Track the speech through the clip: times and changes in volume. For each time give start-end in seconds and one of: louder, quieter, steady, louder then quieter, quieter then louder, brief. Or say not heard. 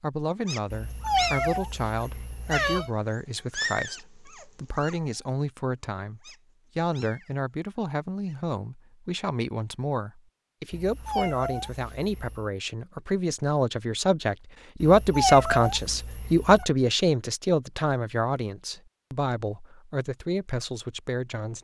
0.0-21.6 louder then quieter.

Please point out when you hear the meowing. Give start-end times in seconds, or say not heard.
0.7-2.9, 10.7-12.5, 14.8-16.6.